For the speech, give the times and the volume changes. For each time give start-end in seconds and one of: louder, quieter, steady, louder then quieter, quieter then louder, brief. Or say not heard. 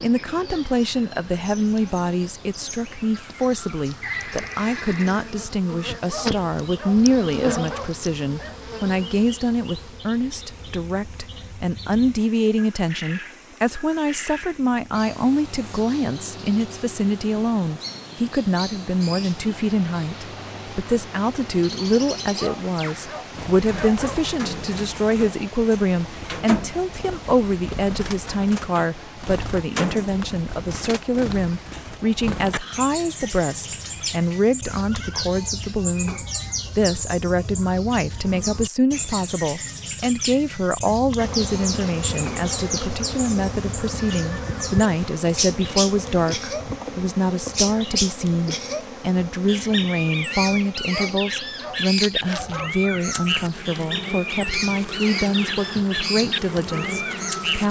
0.0-57.6 steady.